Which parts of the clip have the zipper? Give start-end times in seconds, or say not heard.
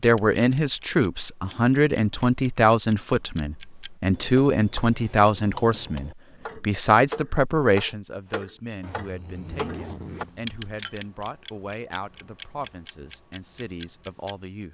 8.8-10.6.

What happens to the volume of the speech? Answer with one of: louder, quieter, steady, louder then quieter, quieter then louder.
quieter.